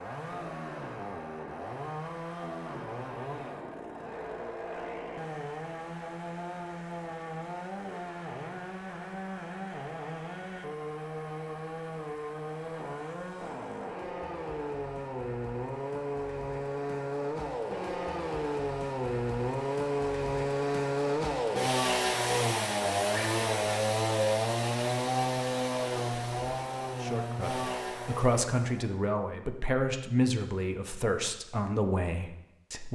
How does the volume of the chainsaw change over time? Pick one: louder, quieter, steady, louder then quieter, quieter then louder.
louder.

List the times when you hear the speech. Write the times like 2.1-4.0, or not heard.
27.0-32.9.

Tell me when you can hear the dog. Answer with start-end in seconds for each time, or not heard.
not heard.